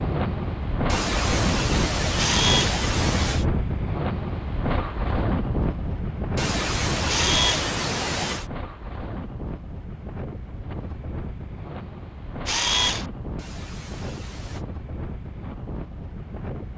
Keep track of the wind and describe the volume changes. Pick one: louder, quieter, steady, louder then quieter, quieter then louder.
quieter.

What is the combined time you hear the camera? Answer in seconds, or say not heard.
2 s.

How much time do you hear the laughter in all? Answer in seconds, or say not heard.
6 s.